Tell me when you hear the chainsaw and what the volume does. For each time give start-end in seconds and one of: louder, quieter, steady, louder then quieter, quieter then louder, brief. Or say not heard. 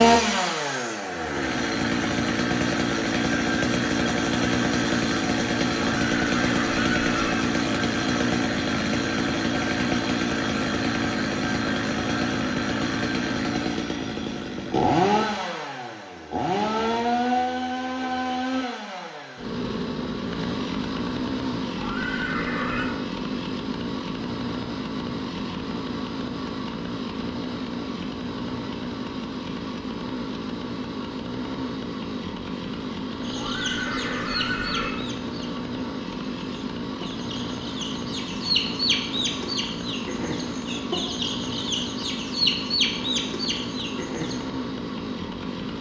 0.0-45.7 quieter.